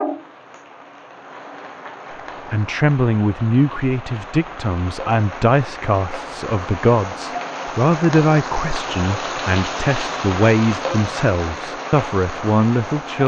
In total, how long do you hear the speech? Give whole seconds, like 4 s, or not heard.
11 s.